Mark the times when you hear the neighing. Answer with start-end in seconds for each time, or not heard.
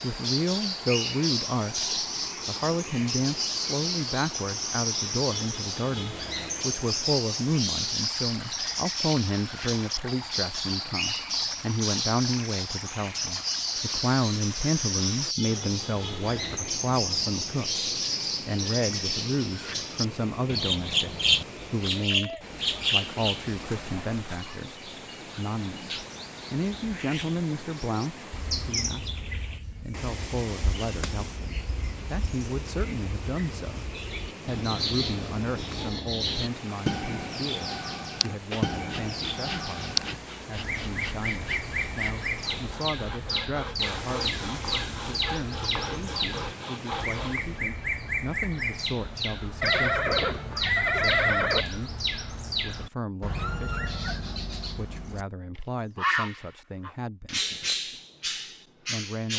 16.4-17.3, 23.6-24.5, 49.6-51.6.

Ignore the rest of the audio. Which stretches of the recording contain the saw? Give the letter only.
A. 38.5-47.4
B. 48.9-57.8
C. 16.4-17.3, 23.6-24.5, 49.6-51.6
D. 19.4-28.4
A.